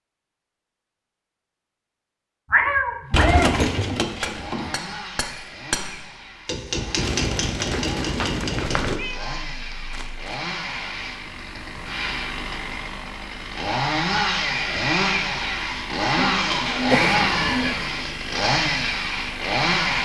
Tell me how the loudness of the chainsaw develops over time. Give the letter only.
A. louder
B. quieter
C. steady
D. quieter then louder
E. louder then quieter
A.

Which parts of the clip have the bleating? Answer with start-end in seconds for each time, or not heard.
not heard.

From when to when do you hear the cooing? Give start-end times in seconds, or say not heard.
3.1-4.8, 7.0-9.0, 16.1-18.1.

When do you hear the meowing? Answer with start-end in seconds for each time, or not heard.
2.5-3.5, 8.8-10.4, 16.9-17.9.